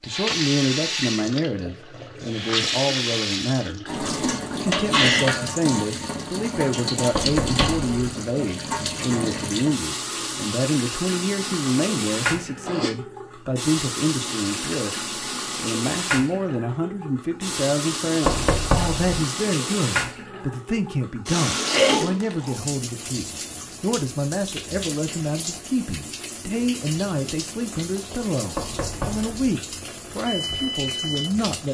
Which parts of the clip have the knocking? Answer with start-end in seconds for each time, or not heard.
7.1-7.9, 18.2-19.2, 28.6-29.6.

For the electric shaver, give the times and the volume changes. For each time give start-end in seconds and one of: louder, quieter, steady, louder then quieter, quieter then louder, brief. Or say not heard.
not heard.